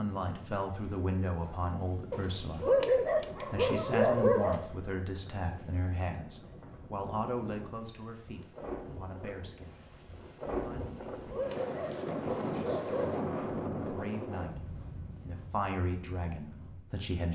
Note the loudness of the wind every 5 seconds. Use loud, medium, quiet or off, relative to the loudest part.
quiet, medium, loud, quiet.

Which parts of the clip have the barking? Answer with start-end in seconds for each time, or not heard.
2.1-4.7, 10.8-13.2.